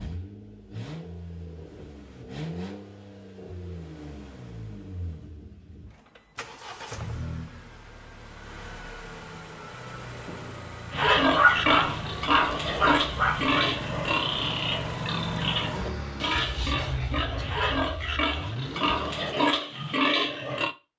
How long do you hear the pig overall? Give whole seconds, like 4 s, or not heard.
10 s.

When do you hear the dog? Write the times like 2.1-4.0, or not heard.
11.2-13.6.